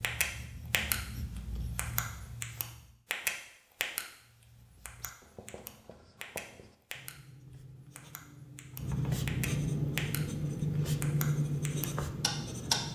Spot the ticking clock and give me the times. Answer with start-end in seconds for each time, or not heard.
0.0-0.9, 1.8-4.0, 4.8-7.2, 8.0-10.2, 11.0-12.8.